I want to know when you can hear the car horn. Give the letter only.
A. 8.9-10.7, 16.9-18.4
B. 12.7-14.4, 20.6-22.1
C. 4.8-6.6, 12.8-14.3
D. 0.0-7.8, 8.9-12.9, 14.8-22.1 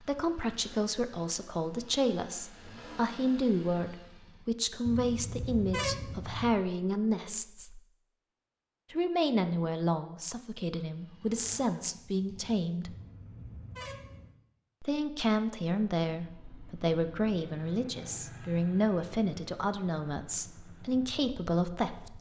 C.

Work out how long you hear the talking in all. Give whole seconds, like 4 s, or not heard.
19 s.